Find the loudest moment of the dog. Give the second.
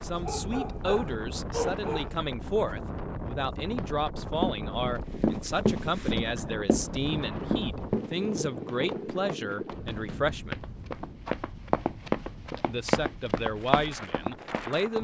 2 s.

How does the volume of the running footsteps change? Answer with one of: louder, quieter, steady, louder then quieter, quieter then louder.
quieter then louder.